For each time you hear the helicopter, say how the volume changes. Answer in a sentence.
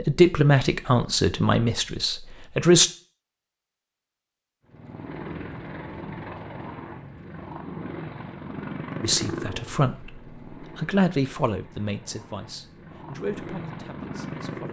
The helicopter can be heard from 4.7 to 14.6 s, getting quieter then louder.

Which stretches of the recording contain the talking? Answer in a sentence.
You can hear the talking from 0.0 to 2.9 s and from 9.0 to 14.6 s.